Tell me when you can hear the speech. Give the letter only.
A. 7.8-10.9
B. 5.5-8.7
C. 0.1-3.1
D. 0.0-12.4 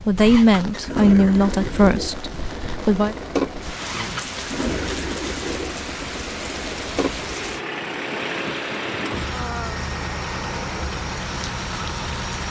C.